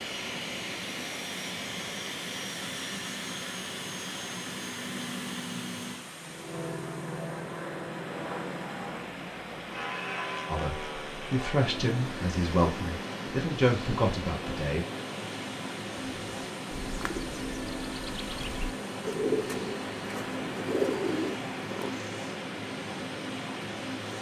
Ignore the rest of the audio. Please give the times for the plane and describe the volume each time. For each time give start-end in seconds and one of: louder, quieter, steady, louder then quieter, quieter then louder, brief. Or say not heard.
0.0-24.1 steady.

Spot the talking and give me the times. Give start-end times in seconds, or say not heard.
10.4-14.8.